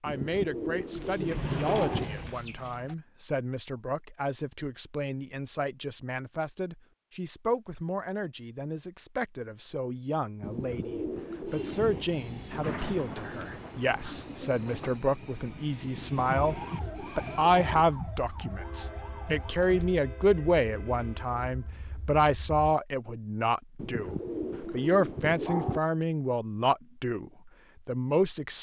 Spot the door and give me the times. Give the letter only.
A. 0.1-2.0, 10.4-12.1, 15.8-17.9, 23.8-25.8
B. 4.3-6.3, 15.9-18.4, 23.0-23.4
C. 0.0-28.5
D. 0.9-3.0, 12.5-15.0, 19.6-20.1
D.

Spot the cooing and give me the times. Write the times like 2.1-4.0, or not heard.
0.1-2.0, 10.4-12.1, 15.8-17.9, 23.8-25.8.